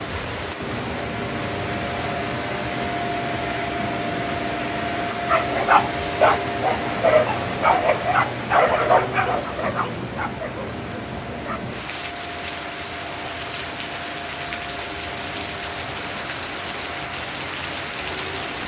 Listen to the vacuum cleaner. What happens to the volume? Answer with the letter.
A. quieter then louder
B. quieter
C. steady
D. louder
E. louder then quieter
B.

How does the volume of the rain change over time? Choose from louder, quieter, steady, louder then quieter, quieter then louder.
steady.